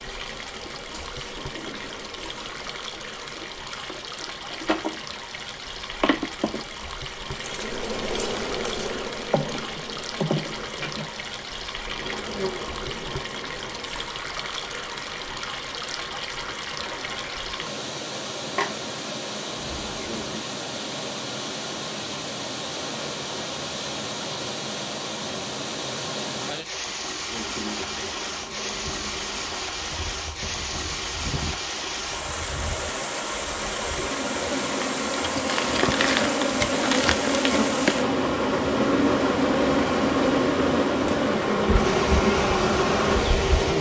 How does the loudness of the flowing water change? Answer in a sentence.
The volume of the flowing water goes up.